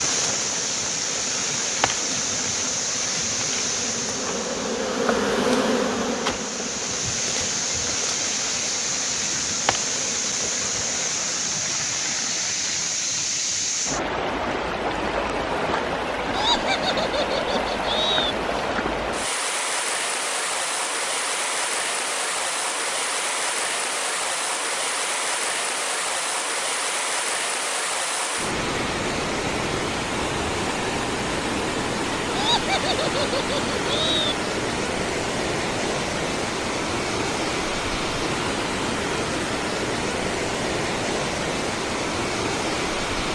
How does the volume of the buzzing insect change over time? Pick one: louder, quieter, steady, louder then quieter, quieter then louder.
louder then quieter.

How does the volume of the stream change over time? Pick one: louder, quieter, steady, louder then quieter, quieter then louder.
steady.